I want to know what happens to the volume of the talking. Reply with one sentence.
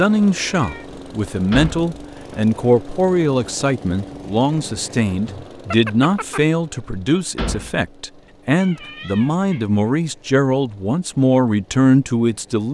The volume of the talking stays about the same.